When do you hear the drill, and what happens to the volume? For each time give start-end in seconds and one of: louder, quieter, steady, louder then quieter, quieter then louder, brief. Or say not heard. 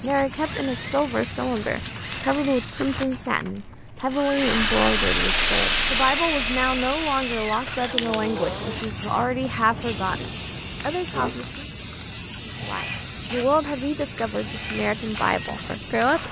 0.2-16.2 louder then quieter.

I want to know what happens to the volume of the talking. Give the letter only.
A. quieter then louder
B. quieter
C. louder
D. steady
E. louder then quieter
D.